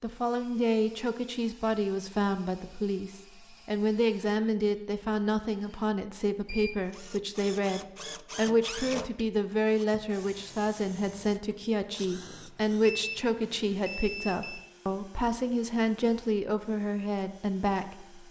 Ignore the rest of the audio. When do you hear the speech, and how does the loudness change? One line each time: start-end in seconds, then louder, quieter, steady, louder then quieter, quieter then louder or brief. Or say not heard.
0.0-18.2 steady.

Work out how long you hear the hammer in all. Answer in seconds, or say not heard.
not heard.